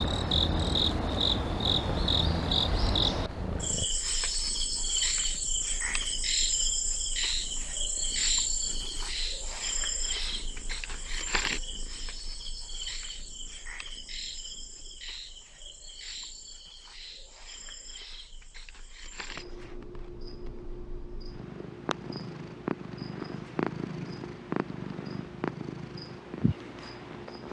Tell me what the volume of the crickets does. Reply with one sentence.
The loudness of the crickets goes down.